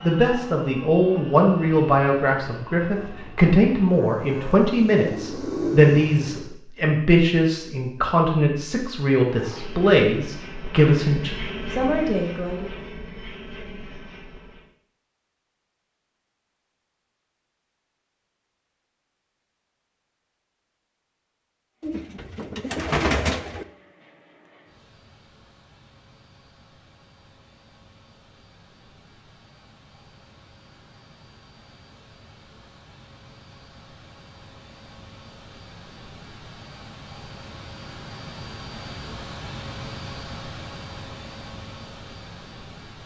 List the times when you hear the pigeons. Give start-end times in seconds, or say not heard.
5.0-6.5, 21.8-23.6.